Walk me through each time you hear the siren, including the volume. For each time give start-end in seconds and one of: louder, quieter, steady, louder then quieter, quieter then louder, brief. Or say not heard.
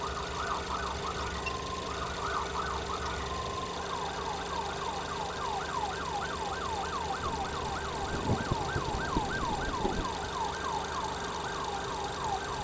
0.0-12.5 steady.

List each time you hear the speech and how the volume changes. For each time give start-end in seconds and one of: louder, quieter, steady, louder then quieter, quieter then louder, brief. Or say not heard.
not heard.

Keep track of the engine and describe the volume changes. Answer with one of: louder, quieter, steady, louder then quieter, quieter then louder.
steady.